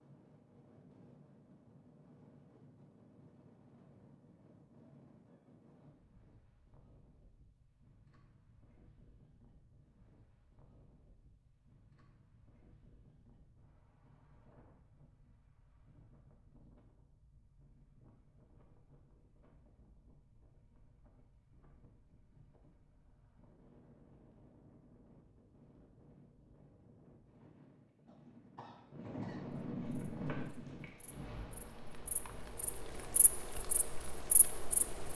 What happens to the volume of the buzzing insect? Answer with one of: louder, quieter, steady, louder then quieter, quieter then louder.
louder.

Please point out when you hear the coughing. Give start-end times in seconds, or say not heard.
28.1-29.5.